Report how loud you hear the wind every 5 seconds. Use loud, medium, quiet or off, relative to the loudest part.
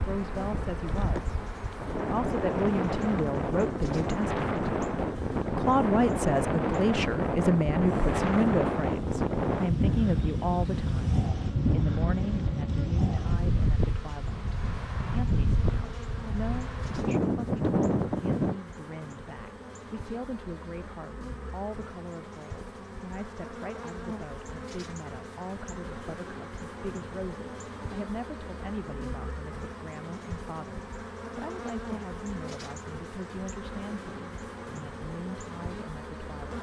loud, loud, loud, loud, off, off, off, off.